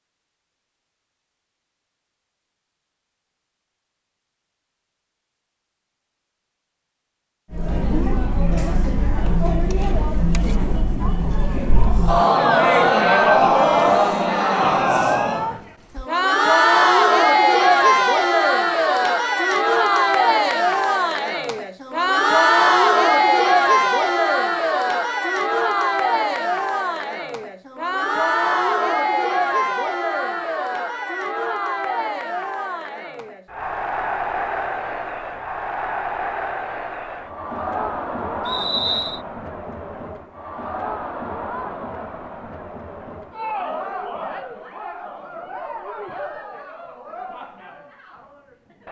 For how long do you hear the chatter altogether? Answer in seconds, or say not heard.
41 s.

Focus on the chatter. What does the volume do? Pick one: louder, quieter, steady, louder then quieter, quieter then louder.
quieter.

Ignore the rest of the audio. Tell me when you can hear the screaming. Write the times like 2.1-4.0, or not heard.
not heard.